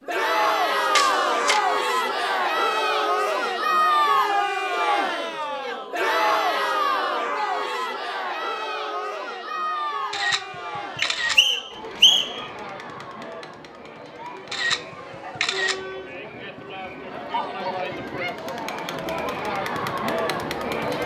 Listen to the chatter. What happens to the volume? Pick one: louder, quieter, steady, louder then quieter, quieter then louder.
quieter then louder.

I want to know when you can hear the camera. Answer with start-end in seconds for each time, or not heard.
0.9-1.6, 10.1-11.4, 14.5-15.8.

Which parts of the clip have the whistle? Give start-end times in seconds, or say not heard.
11.2-12.4.